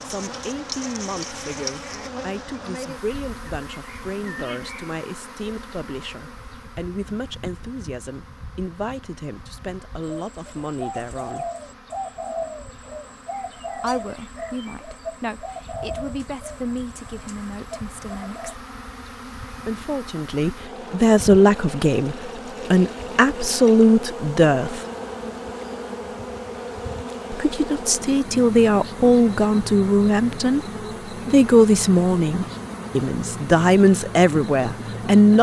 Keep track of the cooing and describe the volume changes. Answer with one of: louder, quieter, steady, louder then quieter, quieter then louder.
quieter.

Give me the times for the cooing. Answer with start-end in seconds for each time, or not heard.
10.1-18.6.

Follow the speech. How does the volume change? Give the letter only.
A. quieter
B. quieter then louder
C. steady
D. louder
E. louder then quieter
D.